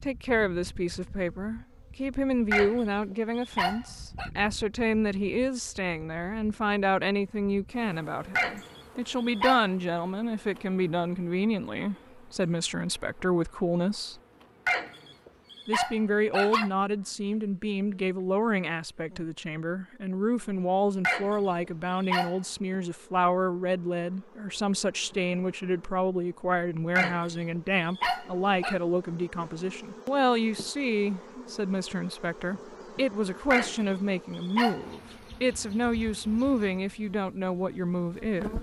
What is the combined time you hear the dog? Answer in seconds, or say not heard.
10 s.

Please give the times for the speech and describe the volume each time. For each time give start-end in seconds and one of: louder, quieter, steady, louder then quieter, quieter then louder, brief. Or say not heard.
0.0-14.2 steady
15.7-38.5 steady.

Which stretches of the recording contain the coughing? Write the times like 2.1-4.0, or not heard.
not heard.